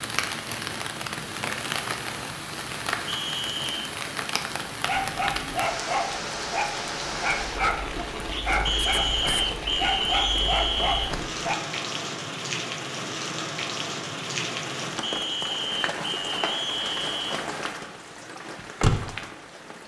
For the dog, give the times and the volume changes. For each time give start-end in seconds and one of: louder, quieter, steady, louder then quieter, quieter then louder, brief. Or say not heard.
4.7-11.6 steady.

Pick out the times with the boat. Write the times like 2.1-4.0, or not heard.
not heard.